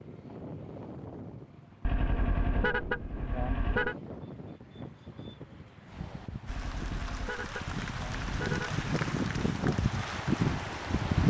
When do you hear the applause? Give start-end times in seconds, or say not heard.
6.5-11.0.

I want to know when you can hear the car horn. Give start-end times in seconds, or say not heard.
1.9-4.0, 6.5-8.8.